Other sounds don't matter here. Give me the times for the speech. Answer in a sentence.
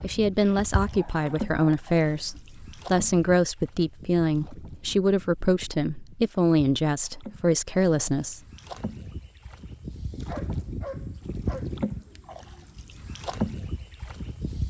The speech can be heard from 0.0 to 8.4 s.